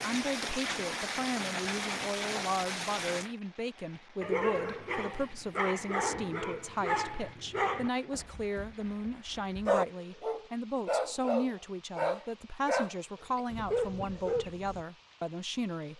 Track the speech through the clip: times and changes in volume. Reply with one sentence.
The speech can be heard from 0.0 to 15.9 s, at a steady volume.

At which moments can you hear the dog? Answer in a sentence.
You can hear the dog from 4.2 to 14.8 s.